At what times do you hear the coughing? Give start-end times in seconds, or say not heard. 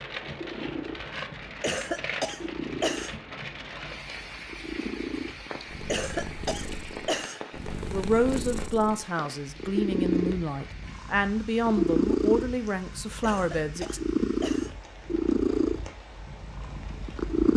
1.6-3.1, 5.8-7.6, 13.2-14.8.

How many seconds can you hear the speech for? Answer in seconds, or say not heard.
6 s.